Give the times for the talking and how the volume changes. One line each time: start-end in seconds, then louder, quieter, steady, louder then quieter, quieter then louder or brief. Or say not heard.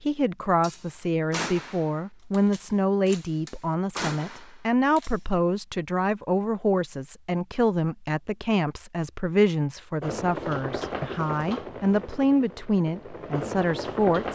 0.0-14.3 steady.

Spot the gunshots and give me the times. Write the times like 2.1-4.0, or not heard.
0.6-5.2.